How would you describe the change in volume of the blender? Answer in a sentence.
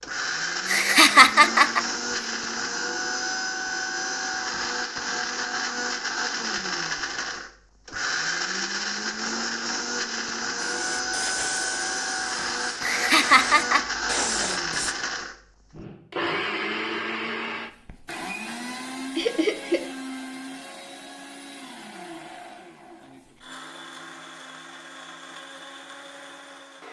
The loudness of the blender goes down.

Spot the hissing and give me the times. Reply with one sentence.
The hissing can be heard from 10.6 to 14.9 s.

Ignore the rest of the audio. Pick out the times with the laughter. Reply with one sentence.
You can hear the laughter from 0.7 to 1.8 s, from 12.8 to 13.9 s and from 19.1 to 19.9 s.